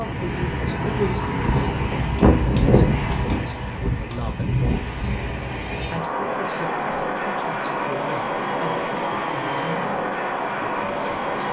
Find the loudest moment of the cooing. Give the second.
3 s.